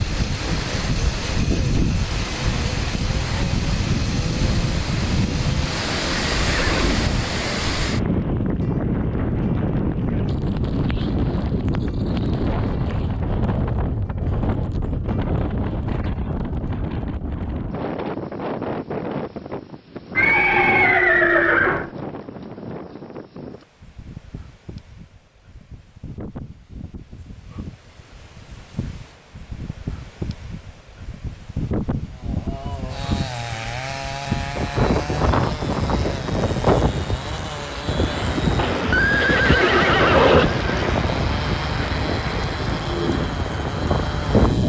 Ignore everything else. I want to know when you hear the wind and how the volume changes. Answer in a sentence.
You can hear the wind from 0.0 to 44.6 s, getting quieter then louder.